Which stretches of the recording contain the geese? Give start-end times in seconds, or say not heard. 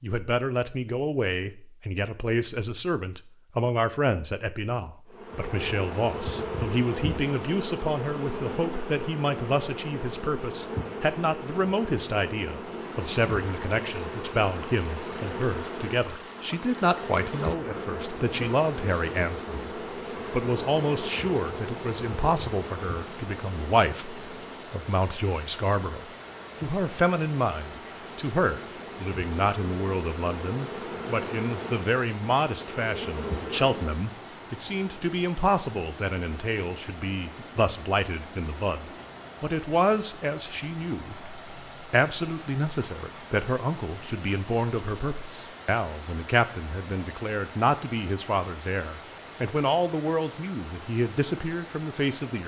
not heard.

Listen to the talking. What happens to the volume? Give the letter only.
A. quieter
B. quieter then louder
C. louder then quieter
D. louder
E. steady
E.